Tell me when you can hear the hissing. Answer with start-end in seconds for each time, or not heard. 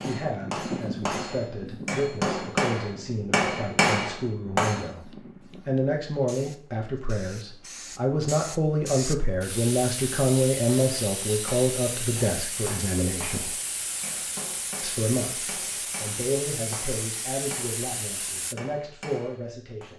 0.0-18.6.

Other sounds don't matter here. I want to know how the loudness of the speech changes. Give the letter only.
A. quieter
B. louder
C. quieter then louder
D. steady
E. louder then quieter
E.